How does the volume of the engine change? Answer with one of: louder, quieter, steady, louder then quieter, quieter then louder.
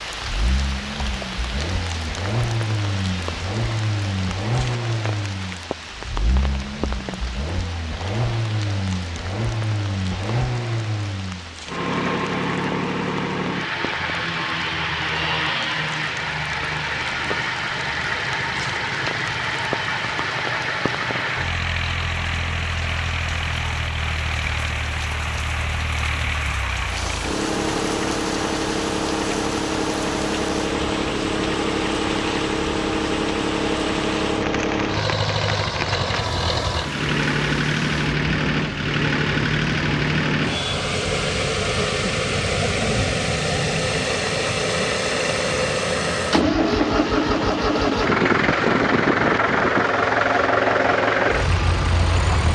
louder.